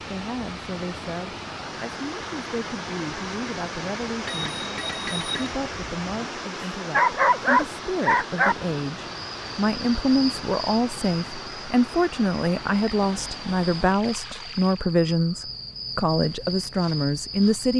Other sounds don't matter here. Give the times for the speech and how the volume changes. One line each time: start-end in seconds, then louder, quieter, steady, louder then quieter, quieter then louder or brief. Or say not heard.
0.1-17.7 louder.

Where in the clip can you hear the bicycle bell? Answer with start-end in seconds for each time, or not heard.
4.2-5.5.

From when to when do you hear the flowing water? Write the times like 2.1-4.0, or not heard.
0.0-14.9.